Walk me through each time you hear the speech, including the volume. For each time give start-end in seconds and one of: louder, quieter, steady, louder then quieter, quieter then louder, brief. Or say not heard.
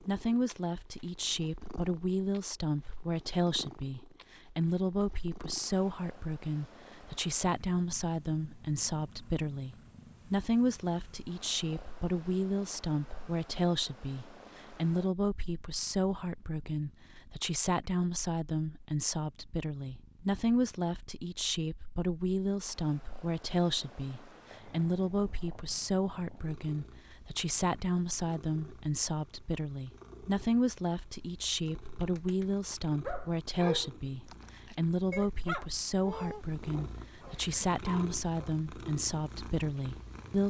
0.0-40.4 steady.